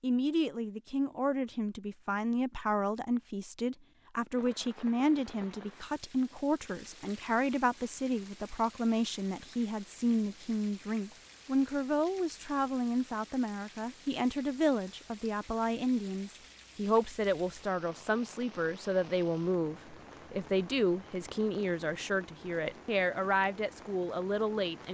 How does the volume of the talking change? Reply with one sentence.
The loudness of the talking stays about the same.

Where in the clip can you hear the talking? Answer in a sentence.
The talking can be heard from 0.0 to 24.8 s.